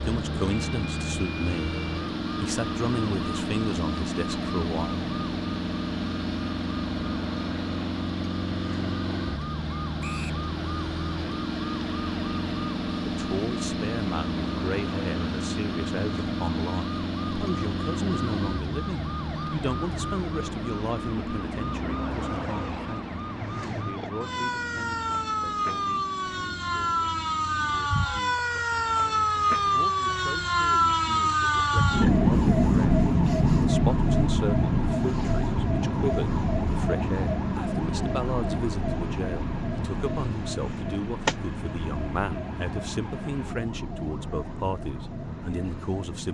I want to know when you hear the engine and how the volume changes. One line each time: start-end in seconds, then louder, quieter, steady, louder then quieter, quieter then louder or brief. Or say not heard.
0.0-46.3 quieter.